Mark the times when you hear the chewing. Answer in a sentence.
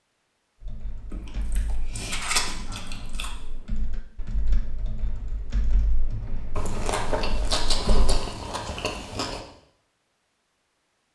The chewing can be heard from 1.1 to 3.3 s and from 6.5 to 9.4 s.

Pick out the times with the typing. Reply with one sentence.
You can hear the typing from 0.6 to 8.2 s.